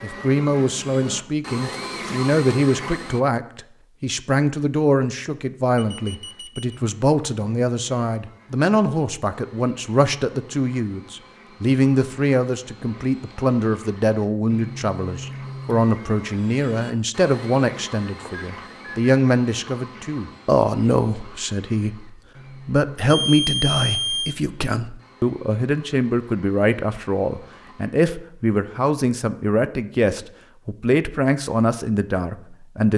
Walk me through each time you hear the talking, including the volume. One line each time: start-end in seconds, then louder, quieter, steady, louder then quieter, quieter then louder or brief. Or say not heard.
0.0-32.9 steady.